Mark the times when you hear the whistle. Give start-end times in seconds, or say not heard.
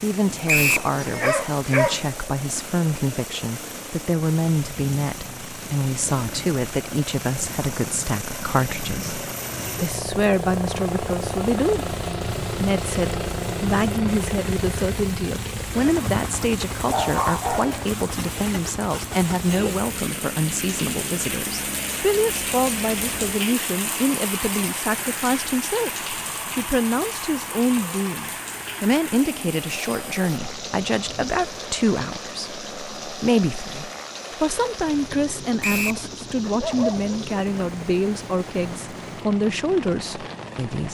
0.5-0.9, 35.6-36.0.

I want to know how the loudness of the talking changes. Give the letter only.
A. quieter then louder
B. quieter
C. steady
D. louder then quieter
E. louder
C.